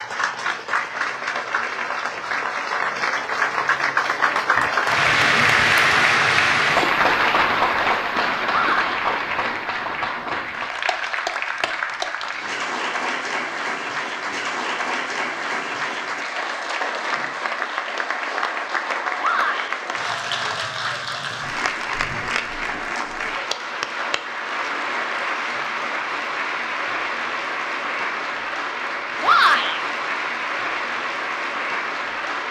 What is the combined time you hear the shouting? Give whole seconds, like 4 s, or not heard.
2 s.